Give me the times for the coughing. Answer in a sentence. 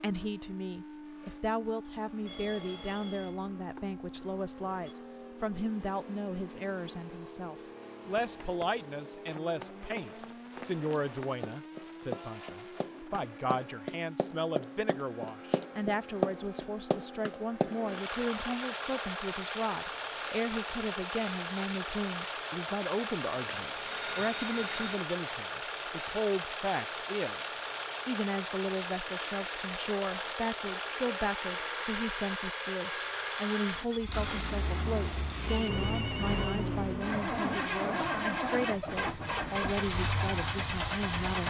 You can't hear the coughing here.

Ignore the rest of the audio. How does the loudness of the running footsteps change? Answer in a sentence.
The loudness of the running footsteps goes up.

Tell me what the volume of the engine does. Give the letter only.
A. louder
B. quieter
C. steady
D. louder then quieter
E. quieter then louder
A.